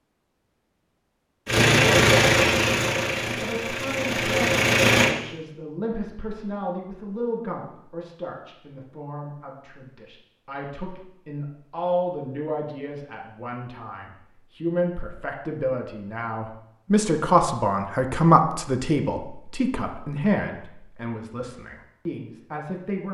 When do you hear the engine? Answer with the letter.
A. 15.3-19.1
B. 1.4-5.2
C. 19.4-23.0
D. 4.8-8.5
B.